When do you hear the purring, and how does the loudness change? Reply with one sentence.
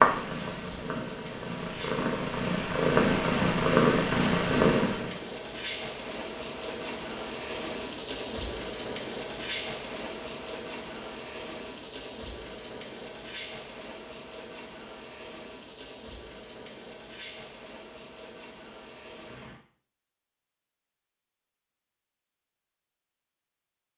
You can hear the purring from 0.0 to 5.2 s, getting louder.